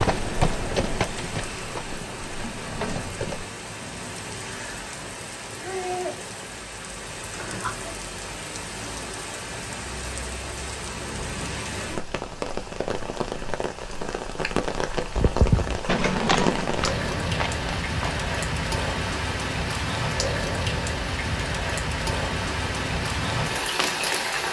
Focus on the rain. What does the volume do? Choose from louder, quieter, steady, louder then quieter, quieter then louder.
louder.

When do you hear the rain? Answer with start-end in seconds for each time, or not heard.
0.0-24.4.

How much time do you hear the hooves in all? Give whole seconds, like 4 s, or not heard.
7 s.